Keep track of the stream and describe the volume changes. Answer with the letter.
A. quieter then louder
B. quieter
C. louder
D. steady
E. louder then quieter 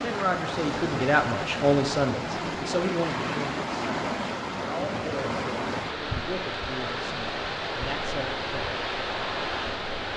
D.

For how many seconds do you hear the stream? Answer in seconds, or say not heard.
10 s.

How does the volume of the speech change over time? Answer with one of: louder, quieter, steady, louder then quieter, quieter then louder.
quieter.